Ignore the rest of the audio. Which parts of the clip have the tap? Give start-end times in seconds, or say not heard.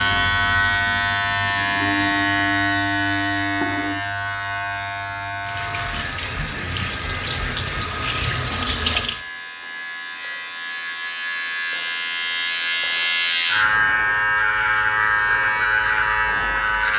5.4-9.2.